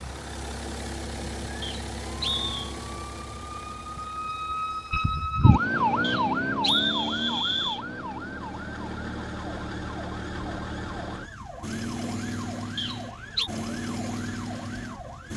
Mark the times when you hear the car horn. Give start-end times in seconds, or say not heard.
not heard.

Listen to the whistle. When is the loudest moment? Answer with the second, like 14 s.
7 s.